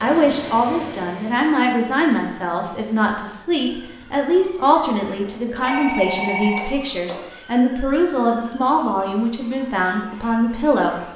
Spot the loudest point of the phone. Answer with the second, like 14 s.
6 s.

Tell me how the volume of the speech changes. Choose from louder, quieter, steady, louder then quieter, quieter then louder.
steady.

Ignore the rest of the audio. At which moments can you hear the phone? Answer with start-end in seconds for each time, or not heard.
5.2-7.3.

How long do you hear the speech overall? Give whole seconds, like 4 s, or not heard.
11 s.